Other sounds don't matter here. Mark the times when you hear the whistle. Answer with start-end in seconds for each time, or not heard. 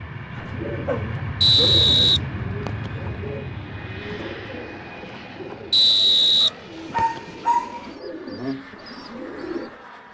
1.4-2.9, 5.7-7.2.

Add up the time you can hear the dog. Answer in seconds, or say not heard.
3 s.